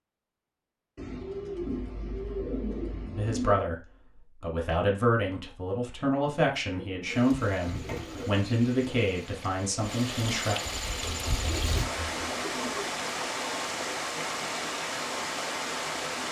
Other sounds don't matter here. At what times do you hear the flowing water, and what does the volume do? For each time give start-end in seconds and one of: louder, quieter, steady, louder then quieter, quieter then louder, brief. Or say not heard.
7.0-16.2 louder.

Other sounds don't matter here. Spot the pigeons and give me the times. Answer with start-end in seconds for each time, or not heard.
0.9-3.6, 6.2-8.2, 11.0-13.0.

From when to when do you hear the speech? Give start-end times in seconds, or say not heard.
3.1-10.6.